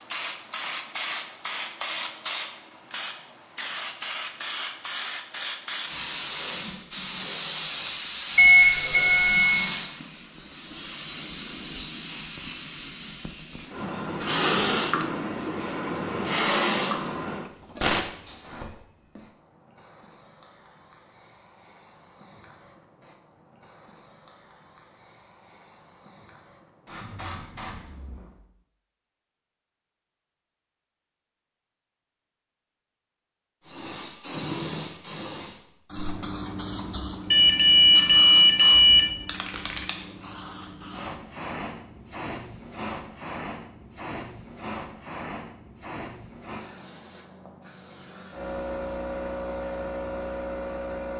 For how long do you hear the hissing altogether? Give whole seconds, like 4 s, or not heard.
46 s.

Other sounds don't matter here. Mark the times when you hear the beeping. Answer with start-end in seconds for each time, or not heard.
8.3-9.6, 37.3-39.0.